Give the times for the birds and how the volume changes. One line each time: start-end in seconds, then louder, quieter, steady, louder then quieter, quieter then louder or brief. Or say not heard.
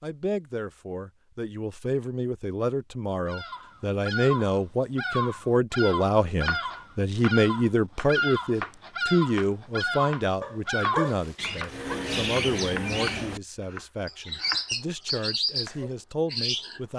3.2-13.4 steady
14.1-16.8 brief.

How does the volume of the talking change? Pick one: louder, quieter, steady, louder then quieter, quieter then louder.
louder then quieter.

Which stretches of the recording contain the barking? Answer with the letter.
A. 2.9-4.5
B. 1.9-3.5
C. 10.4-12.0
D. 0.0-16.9
C.